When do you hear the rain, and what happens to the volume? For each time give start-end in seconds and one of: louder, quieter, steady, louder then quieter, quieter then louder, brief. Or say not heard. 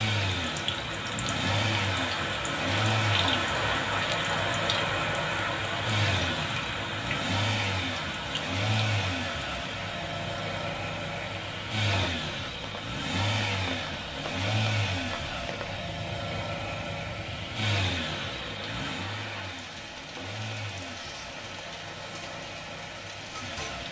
0.0-23.8 quieter.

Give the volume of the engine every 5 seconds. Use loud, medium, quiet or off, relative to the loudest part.
loud, loud, loud, loud, medium.